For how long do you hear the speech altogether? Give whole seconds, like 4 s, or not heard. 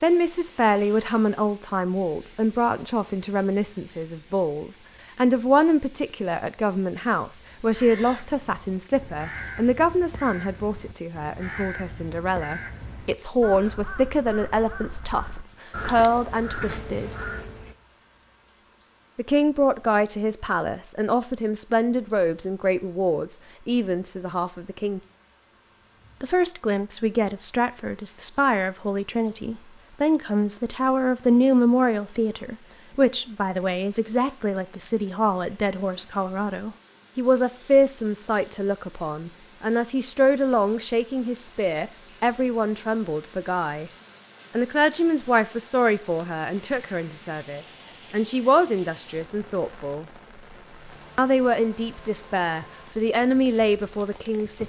50 s.